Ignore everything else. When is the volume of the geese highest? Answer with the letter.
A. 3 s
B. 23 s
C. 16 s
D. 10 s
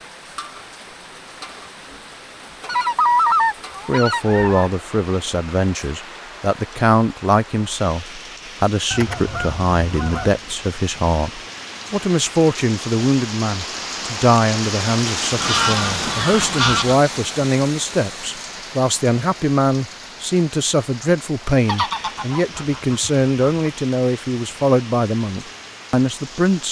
A.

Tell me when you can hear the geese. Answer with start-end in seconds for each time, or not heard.
2.6-4.7, 8.9-10.3, 15.4-17.0, 21.6-23.7.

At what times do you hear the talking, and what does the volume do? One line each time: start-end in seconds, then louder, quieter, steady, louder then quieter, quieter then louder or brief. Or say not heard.
3.9-26.6 steady.